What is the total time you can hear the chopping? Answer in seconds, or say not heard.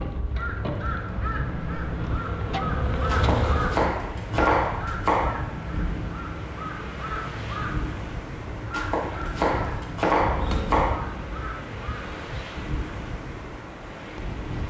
5 s.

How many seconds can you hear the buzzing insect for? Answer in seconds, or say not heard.
6 s.